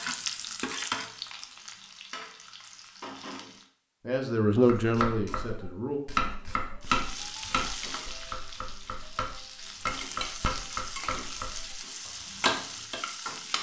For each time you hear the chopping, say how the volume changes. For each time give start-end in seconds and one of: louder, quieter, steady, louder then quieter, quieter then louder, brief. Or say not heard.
4.5-13.0 quieter then louder.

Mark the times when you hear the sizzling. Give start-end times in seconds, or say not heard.
0.0-3.7, 6.8-13.5.